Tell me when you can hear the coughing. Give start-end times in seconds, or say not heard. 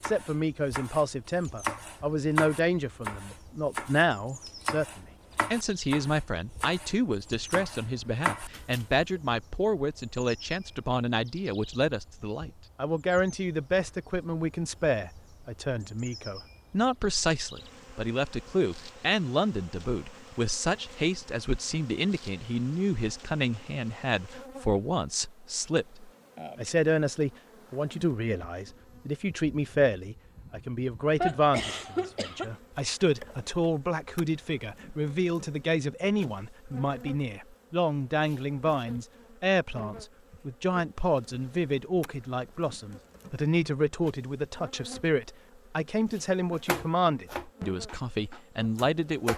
31.2-32.5.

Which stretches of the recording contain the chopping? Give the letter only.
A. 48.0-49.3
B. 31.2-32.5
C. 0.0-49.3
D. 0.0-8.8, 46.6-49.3
D.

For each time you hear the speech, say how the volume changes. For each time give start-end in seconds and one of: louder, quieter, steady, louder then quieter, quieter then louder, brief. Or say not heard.
0.0-49.3 steady.